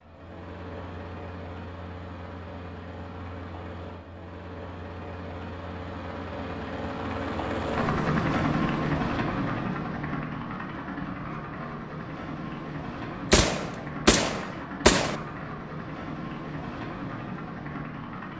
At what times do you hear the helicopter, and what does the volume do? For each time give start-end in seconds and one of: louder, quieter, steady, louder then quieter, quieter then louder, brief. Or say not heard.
0.0-18.3 louder then quieter.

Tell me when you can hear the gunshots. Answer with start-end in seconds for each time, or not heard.
13.3-15.2.